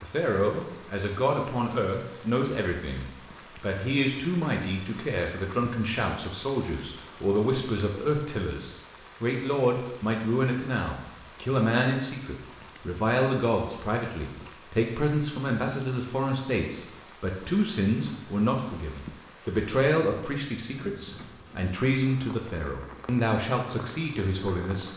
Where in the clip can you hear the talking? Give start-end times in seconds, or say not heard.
0.0-24.9.